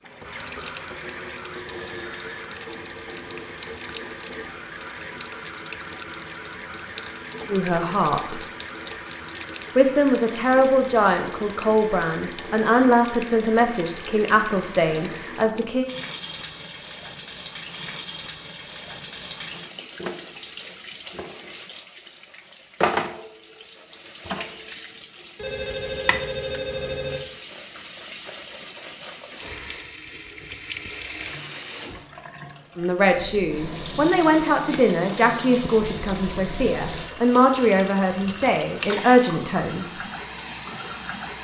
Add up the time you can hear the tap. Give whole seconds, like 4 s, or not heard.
41 s.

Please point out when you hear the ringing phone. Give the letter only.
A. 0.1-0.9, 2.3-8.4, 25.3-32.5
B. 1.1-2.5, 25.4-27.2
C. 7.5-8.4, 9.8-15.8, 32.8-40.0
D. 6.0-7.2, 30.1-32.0
B.